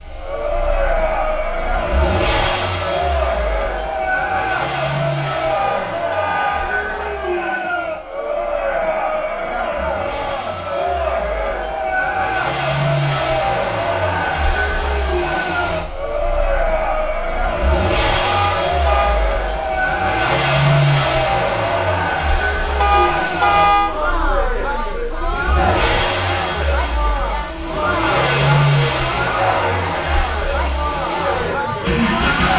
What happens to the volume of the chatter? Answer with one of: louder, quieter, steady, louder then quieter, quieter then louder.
steady.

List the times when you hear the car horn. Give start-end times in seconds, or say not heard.
5.5-6.8, 18.2-19.2, 22.8-23.9.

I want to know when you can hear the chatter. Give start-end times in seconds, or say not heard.
0.1-32.5.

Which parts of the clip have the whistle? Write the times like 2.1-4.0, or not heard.
not heard.